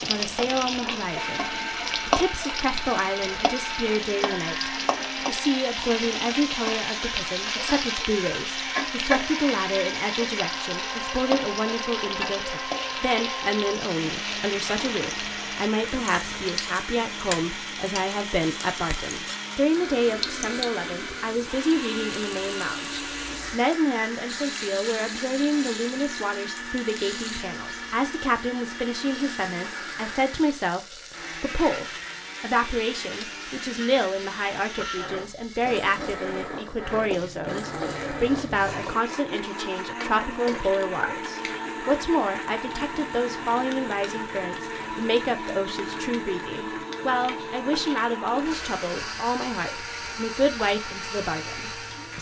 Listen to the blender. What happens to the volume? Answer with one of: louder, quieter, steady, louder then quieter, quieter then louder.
steady.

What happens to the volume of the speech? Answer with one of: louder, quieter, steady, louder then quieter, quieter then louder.
steady.